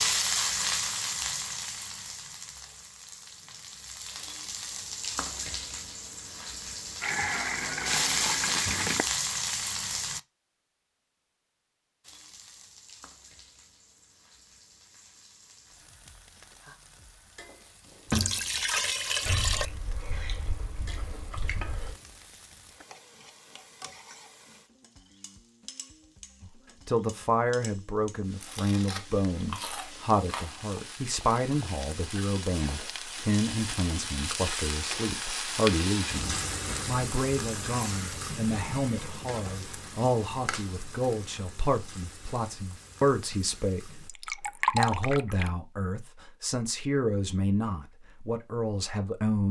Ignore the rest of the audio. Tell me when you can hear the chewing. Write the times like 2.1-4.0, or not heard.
19.2-21.9, 28.4-30.8.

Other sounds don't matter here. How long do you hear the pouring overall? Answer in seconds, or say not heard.
5 s.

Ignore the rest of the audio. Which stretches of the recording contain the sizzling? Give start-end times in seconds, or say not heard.
0.0-10.2, 12.0-44.1.